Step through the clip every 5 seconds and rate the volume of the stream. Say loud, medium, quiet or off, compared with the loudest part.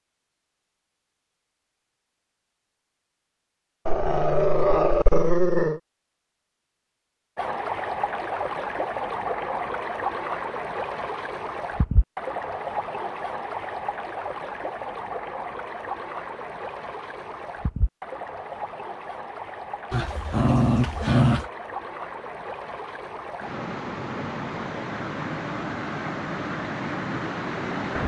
off, loud, loud, medium, medium, loud.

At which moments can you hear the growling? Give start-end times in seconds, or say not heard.
3.9-5.8, 19.9-21.4.